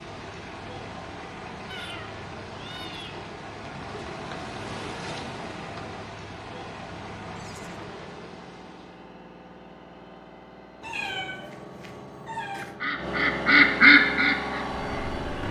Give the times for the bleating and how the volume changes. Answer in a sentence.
The bleating can't be heard in this clip.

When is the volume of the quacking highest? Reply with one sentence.
The volume of the quacking peaks at 14 seconds.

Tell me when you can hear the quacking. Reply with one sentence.
You can hear the quacking from 12.6 to 15.4 s.